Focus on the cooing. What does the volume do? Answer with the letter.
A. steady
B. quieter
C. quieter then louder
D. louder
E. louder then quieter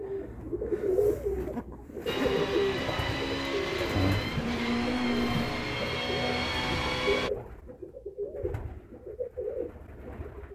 B.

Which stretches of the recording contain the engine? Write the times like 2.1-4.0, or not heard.
2.0-7.3.